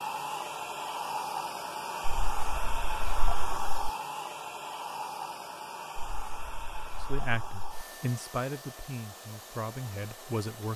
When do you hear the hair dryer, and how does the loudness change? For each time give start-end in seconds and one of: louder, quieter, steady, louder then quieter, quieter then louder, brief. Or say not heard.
0.0-10.7 quieter.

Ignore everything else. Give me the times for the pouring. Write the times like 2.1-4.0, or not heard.
2.0-3.9, 6.0-7.8.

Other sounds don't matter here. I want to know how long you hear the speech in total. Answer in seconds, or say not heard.
4 s.